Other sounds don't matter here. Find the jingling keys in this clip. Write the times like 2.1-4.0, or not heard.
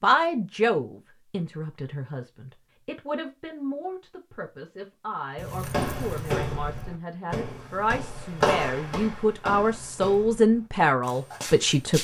5.3-7.0.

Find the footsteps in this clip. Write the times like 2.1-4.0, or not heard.
5.6-11.9.